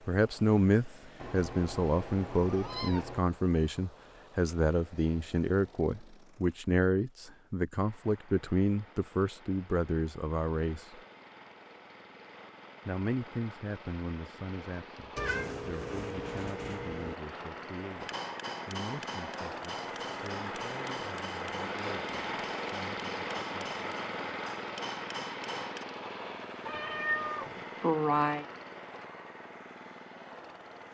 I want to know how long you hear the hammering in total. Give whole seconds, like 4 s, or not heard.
8 s.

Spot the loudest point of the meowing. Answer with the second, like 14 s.
28 s.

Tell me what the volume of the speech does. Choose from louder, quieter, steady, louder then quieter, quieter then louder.
quieter.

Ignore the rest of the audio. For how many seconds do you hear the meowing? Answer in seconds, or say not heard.
6 s.